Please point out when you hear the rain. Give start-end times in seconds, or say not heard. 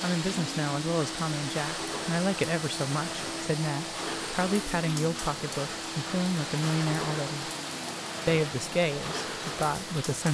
0.0-10.2.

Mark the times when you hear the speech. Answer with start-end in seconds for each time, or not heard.
0.0-7.5, 8.2-10.2.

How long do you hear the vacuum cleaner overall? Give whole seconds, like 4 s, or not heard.
10 s.